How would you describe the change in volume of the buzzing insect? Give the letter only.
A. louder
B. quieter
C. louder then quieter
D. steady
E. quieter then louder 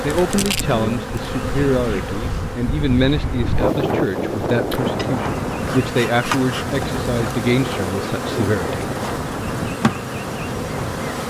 E.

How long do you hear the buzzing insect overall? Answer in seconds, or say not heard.
11 s.